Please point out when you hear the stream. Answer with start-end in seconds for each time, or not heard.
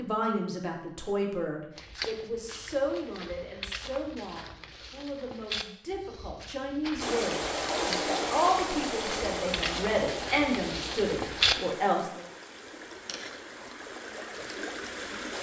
7.0-15.3.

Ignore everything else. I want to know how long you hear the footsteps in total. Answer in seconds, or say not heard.
10 s.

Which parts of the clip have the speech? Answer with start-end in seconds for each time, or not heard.
0.0-12.2.